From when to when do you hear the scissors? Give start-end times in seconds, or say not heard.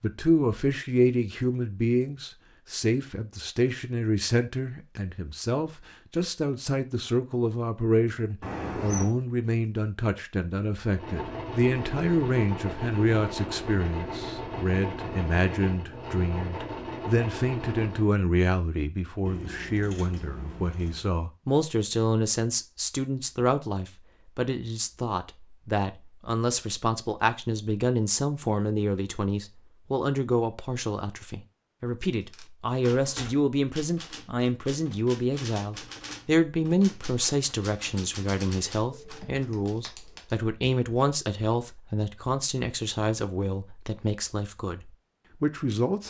8.4-9.1, 19.2-21.1, 38.9-40.4.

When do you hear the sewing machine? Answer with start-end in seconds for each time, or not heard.
10.8-18.1.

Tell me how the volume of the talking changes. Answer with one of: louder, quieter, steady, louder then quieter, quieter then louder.
steady.